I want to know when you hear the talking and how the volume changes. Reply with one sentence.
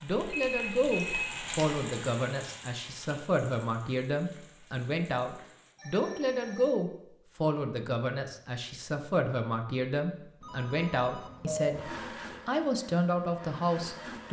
You can hear the talking from 0.0 to 14.2 s, at a steady volume.